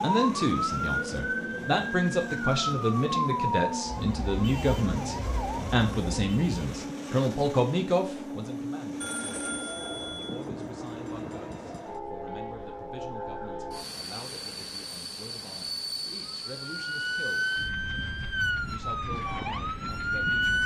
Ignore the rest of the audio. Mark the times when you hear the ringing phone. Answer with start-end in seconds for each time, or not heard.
9.0-10.4.